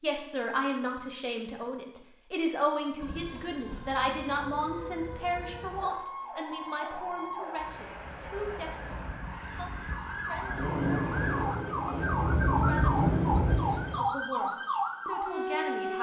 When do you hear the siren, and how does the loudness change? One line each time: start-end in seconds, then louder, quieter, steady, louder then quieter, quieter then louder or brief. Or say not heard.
3.0-15.9 louder.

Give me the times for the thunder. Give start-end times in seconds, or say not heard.
10.6-14.1.